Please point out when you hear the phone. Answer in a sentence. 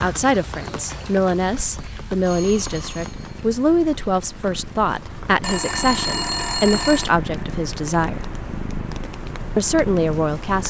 You can hear the phone from 1.4 to 3.4 s and from 5.4 to 7.1 s.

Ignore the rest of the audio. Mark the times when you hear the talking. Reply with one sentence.
You can hear the talking from 0.0 to 8.2 s and from 9.6 to 10.6 s.